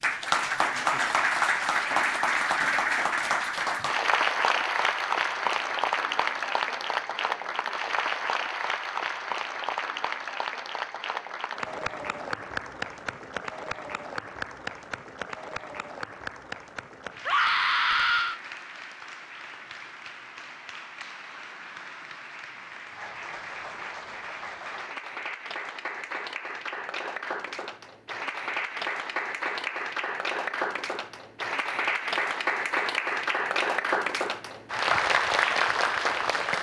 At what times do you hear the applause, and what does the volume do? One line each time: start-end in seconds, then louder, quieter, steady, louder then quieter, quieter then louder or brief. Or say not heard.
0.0-36.5 quieter then louder.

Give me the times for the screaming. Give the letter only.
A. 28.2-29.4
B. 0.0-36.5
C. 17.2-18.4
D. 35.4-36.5
C.